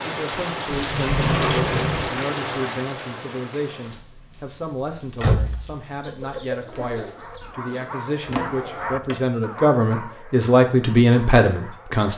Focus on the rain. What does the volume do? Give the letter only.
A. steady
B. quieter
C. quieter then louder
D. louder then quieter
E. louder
B.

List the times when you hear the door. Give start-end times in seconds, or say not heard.
0.7-2.2, 5.2-5.8, 8.2-9.2.